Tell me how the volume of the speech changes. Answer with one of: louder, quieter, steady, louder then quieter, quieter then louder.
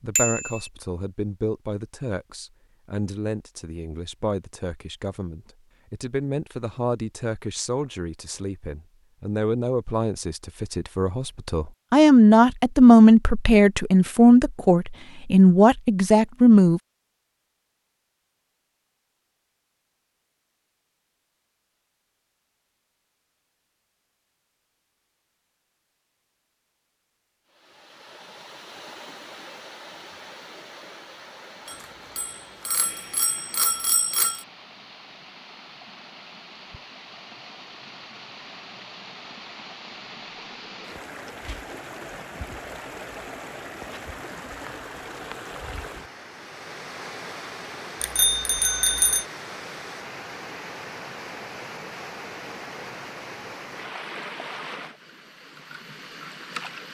louder.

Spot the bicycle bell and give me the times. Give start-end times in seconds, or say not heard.
0.1-0.7, 31.6-34.5, 48.0-49.2.